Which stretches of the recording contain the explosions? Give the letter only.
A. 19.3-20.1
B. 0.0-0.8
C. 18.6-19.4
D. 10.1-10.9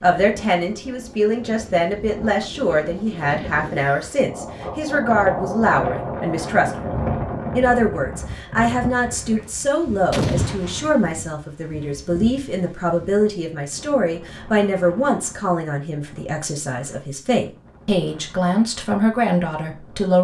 D.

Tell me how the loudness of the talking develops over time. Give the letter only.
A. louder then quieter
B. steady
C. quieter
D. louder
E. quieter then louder
B.